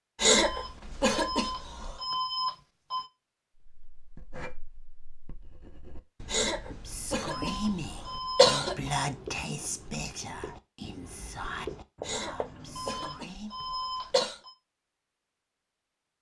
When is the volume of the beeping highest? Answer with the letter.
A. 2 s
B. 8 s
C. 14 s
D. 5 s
A.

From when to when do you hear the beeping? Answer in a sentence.
The beeping can be heard from 0.3 to 3.1 s, from 7.3 to 8.6 s and from 12.8 to 14.6 s.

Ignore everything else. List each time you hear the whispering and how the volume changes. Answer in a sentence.
The whispering can be heard from 6.8 to 13.6 s, getting quieter.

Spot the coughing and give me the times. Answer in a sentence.
The coughing can be heard from 0.2 to 1.9 s, from 6.3 to 8.8 s and from 12.1 to 14.4 s.